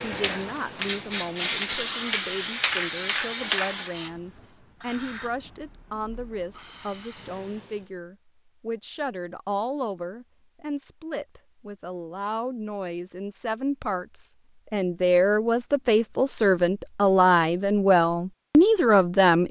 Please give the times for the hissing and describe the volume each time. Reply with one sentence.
You can hear the hissing from 0.0 to 7.9 s, getting quieter.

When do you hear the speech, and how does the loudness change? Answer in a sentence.
You can hear the speech from 0.0 to 19.4 s, getting louder.